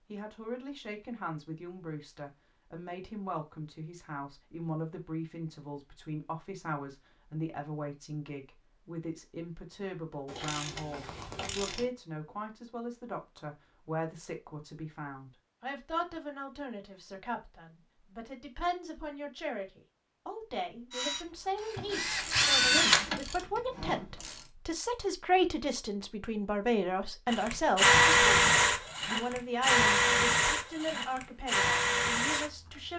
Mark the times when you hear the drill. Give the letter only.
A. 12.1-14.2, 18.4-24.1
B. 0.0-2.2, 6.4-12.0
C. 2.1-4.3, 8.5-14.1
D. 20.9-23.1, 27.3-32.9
D.